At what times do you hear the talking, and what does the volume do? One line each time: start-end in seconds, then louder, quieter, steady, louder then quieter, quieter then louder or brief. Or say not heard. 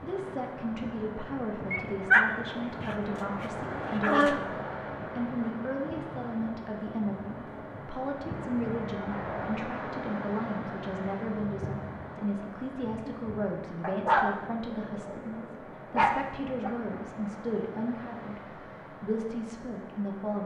0.0-20.4 steady.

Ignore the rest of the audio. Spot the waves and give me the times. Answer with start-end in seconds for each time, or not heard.
0.0-20.4.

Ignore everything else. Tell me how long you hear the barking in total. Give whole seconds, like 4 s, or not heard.
6 s.